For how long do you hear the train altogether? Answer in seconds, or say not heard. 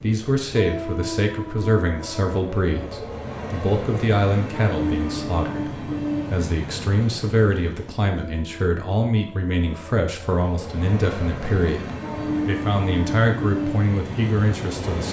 15 s.